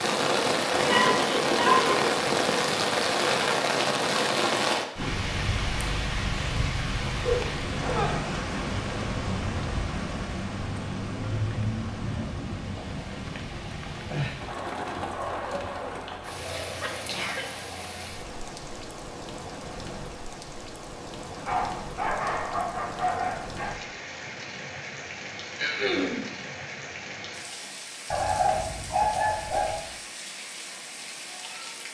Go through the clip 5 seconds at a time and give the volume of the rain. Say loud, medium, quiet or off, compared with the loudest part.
loud, medium, medium, quiet, quiet, quiet, quiet.